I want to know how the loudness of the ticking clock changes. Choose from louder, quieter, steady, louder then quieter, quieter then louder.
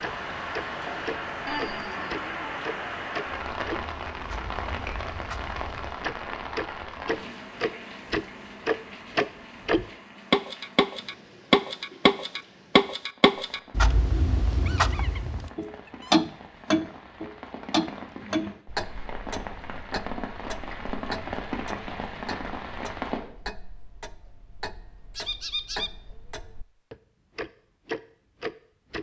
louder then quieter.